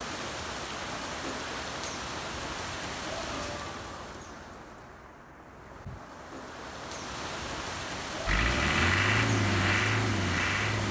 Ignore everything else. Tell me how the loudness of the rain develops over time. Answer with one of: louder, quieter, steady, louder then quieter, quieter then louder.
quieter then louder.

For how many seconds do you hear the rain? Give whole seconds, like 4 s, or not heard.
11 s.